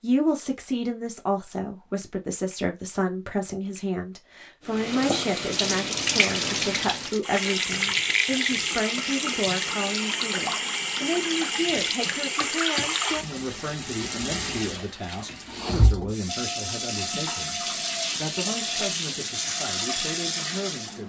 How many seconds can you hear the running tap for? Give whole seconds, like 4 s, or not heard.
16 s.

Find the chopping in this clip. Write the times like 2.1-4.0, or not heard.
not heard.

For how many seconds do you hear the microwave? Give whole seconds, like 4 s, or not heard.
not heard.